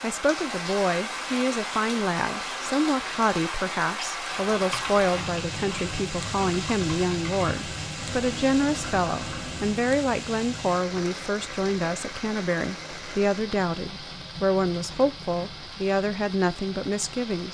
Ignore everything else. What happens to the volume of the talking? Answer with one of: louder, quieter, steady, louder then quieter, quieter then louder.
steady.